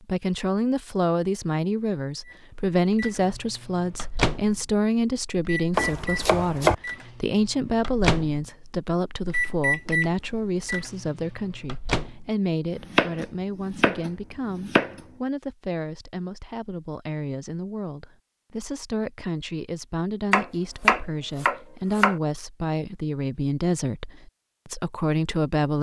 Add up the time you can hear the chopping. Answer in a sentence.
The chopping can be heard for 5 seconds in total.